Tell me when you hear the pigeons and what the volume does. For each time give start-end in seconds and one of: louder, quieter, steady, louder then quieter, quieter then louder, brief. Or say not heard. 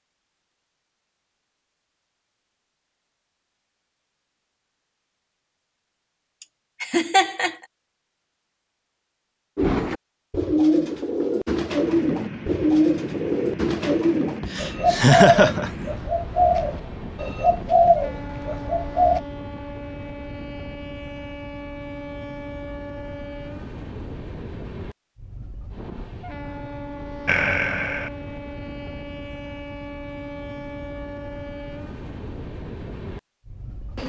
9.6-19.2 steady.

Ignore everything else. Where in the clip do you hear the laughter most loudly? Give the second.
15 s.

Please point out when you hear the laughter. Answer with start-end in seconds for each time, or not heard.
6.4-7.5, 14.4-15.7, 27.2-28.1.